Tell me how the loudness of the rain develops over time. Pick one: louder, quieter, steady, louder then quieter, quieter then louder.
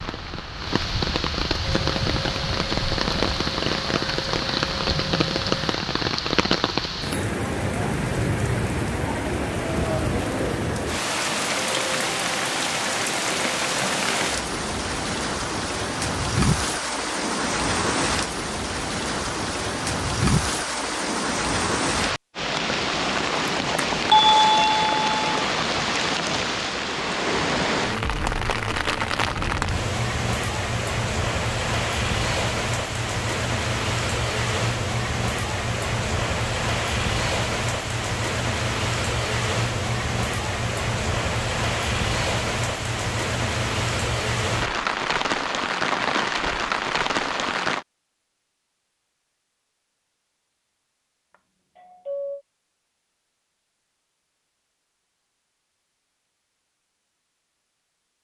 steady.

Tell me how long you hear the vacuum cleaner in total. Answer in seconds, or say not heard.
4 s.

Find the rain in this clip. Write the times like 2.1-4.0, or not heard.
0.0-47.9.